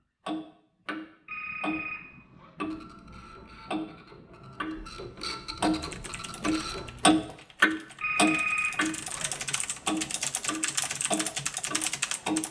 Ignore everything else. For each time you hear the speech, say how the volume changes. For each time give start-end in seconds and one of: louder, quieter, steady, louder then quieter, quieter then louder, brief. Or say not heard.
not heard.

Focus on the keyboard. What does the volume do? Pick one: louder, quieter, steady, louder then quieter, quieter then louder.
louder.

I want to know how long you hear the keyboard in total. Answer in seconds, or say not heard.
7 s.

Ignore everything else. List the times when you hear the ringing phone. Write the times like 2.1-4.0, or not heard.
1.2-2.5, 8.0-9.4.